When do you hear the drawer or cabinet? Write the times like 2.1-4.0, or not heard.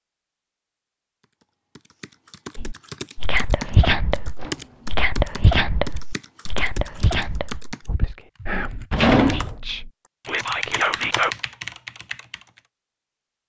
3.5-5.1, 8.9-9.6.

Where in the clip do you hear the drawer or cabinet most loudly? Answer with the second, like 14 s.
9 s.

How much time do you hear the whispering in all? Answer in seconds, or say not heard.
9 s.